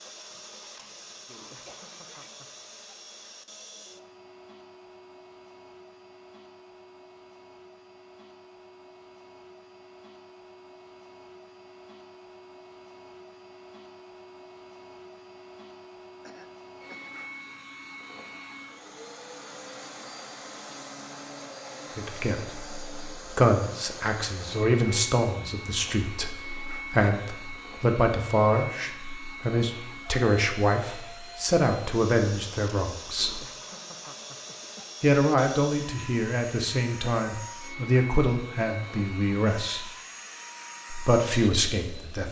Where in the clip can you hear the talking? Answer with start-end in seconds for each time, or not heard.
21.9-33.4, 35.0-39.9, 40.9-42.2.